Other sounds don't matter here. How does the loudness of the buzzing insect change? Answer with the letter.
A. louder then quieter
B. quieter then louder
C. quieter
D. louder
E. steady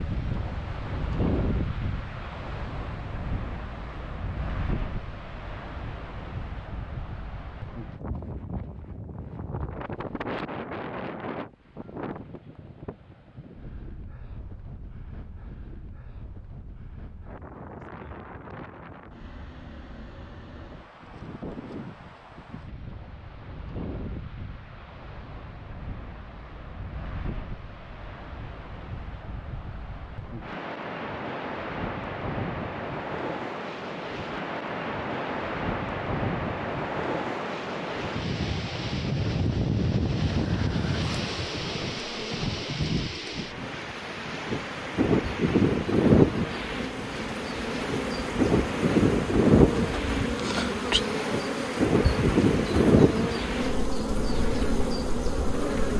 D.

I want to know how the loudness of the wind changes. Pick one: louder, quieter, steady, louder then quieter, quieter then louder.
quieter then louder.